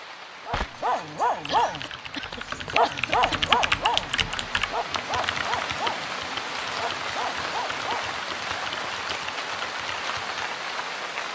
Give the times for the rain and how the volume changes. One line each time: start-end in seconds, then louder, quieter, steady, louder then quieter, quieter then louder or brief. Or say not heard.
0.0-11.3 louder.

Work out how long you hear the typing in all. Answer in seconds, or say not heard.
9 s.